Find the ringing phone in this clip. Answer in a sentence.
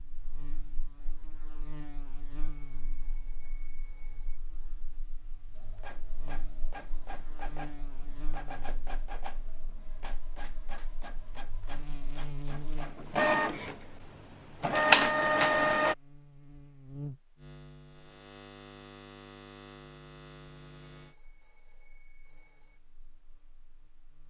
The ringing phone can be heard from 2.4 to 4.4 s and from 20.9 to 22.8 s.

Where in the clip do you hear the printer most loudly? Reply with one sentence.
The loudest moment of the printer is at 15 seconds.